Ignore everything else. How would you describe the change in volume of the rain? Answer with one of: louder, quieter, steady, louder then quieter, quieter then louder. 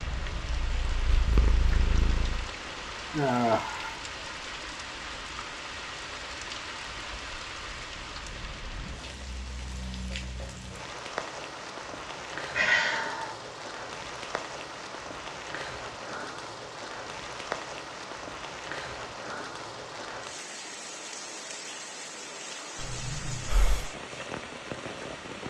steady.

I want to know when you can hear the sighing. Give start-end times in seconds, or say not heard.
3.1-4.0, 12.6-13.3, 22.8-23.9.